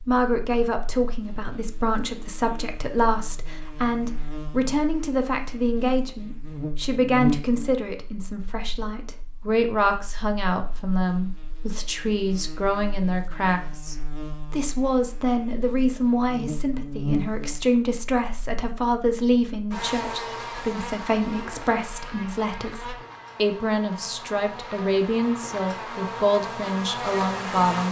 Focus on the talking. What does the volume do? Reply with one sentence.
The volume of the talking stays about the same.